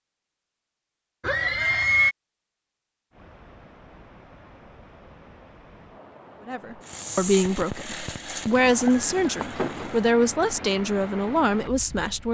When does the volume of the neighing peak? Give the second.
2 s.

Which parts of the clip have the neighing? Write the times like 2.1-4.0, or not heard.
1.2-2.1, 8.4-9.9.